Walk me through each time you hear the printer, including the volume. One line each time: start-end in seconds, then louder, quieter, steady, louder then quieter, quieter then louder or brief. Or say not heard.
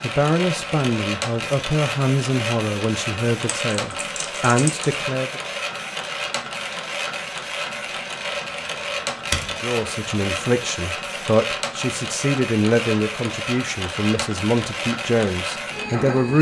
0.0-16.3 steady.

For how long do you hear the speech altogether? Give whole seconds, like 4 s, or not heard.
12 s.